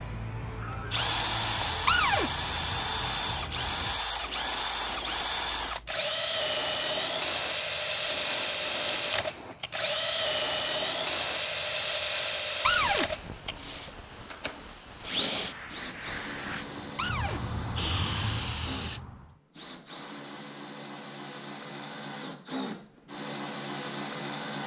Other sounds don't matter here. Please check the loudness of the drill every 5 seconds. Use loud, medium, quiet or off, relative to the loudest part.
loud, loud, loud, medium, medium.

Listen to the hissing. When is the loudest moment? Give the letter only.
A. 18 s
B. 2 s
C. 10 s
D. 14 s
A.